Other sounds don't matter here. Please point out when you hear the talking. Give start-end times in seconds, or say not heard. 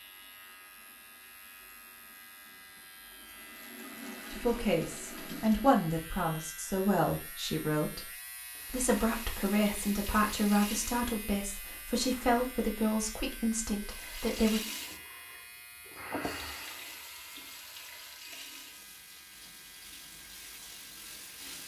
4.3-8.1, 8.7-14.6.